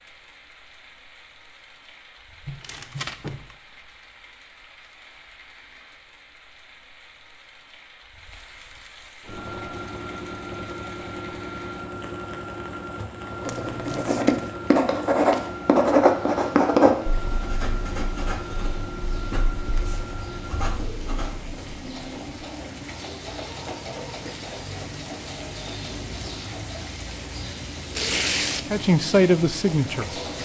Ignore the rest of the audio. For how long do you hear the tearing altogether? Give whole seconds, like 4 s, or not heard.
3 s.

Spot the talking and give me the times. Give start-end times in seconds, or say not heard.
28.7-30.2.